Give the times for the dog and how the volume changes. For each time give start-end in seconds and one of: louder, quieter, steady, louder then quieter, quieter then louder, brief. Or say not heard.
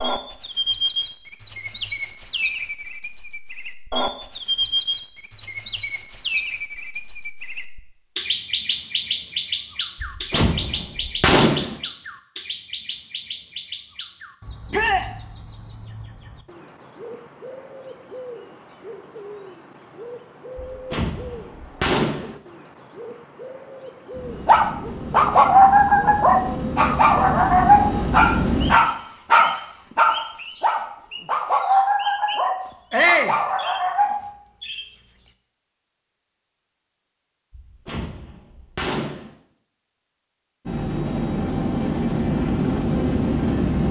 24.4-34.2 quieter.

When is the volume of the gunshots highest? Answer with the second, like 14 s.
11 s.